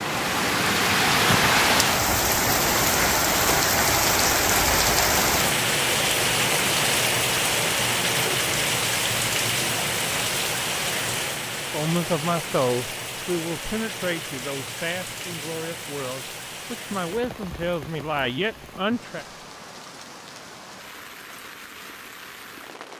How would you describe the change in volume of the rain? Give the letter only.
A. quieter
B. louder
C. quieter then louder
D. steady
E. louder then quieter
A.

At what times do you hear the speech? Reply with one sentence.
The speech can be heard from 11.7 to 19.2 s.